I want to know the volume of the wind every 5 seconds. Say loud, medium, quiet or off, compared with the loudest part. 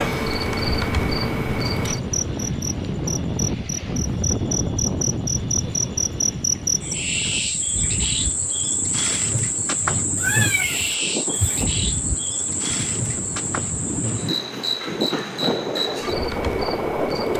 loud, medium, medium, loud.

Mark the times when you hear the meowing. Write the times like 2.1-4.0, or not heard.
10.2-11.7.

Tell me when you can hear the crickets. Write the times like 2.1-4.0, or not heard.
0.0-17.3.